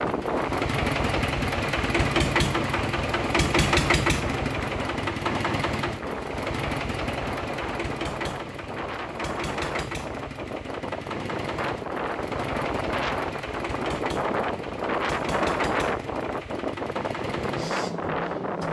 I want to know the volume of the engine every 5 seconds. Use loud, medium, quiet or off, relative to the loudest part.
loud, medium, medium, medium.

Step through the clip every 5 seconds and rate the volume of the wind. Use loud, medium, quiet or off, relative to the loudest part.
loud, medium, loud, loud.